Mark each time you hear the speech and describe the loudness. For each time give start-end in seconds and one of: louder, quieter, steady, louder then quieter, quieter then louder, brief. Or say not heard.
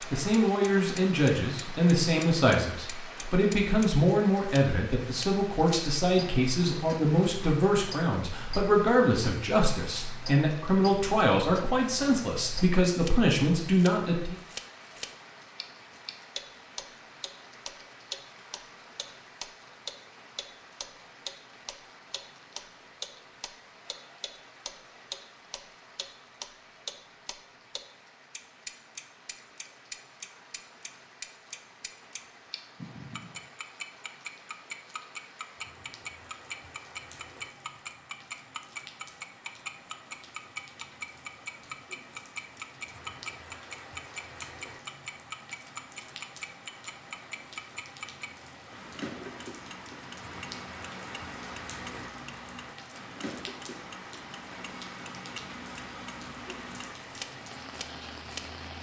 0.0-14.3 steady.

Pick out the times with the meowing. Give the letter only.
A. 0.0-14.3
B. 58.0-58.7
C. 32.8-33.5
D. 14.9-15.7
C.